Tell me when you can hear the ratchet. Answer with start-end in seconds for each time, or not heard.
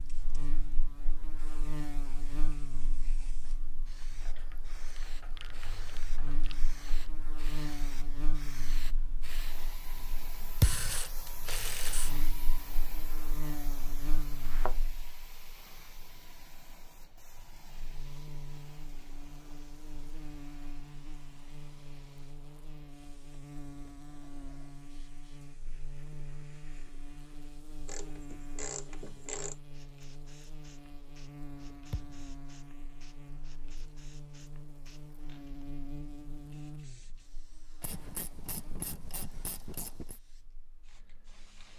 4.2-7.0, 10.6-12.2, 27.9-29.6, 37.8-40.2.